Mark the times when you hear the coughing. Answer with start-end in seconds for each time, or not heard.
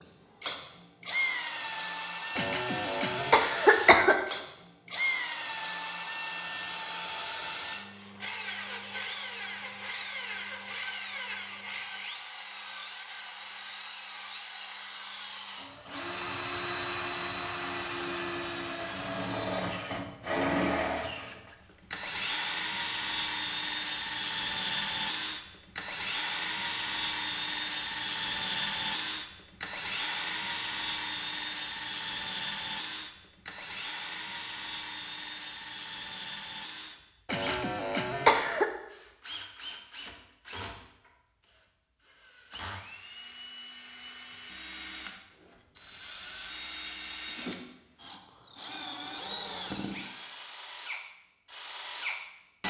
2.4-4.2, 37.3-38.6.